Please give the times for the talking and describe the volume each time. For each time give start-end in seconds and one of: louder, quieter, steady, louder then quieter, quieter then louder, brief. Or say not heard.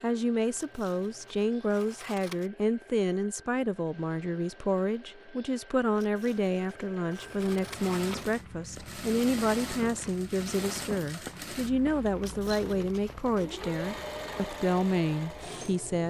0.0-16.0 steady.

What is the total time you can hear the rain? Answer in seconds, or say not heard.
not heard.